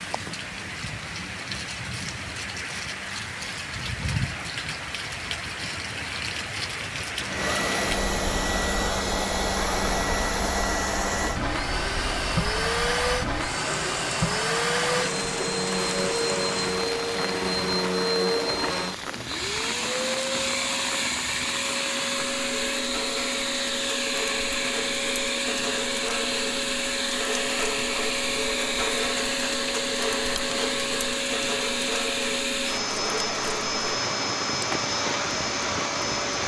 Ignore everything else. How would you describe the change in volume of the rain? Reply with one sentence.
The volume of the rain stays about the same.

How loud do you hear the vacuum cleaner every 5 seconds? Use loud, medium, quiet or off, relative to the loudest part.
quiet, loud, loud, loud, loud, loud, loud, loud.